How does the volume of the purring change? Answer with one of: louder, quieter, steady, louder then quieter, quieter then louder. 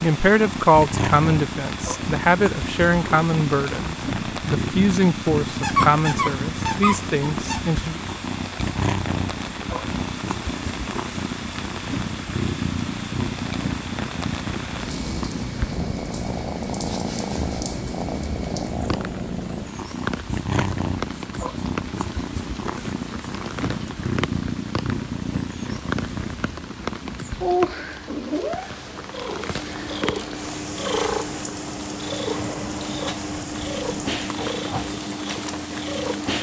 steady.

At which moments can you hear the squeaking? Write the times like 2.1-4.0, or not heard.
5.6-7.7.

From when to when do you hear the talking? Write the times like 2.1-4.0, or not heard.
0.0-8.0.